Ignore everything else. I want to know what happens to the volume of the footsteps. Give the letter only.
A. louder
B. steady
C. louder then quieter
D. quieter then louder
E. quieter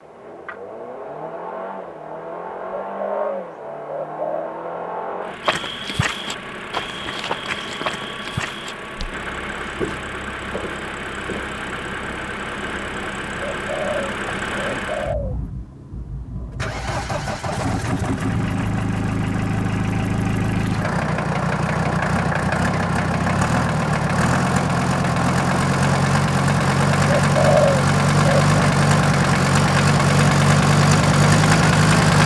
E.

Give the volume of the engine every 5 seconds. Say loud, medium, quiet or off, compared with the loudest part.
quiet, quiet, quiet, medium, medium, loud, loud.